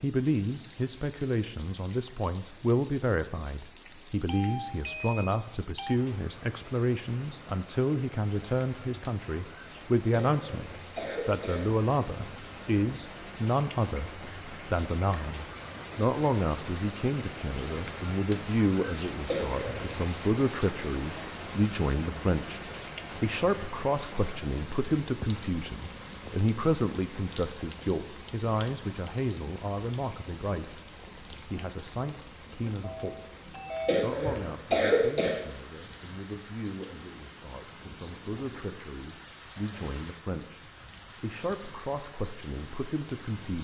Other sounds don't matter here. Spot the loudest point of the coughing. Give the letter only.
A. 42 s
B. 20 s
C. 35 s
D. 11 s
C.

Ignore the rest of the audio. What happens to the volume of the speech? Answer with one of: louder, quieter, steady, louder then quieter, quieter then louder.
quieter.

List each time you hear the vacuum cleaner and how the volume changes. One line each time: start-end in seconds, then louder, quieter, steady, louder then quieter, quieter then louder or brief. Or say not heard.
not heard.